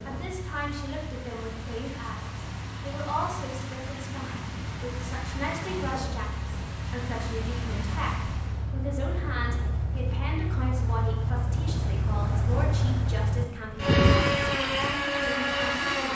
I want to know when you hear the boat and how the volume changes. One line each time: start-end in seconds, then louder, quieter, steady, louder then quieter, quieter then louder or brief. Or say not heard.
0.0-16.0 louder.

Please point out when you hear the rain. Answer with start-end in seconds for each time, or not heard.
0.0-8.7.